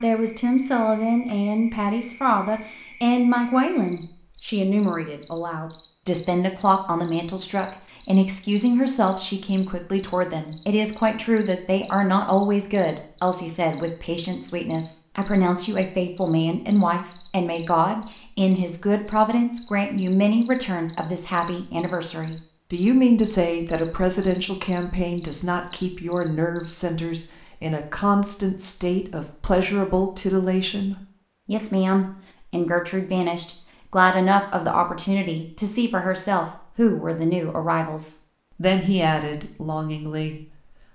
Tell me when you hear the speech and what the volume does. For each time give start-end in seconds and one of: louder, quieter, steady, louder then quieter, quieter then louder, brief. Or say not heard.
0.0-40.4 steady.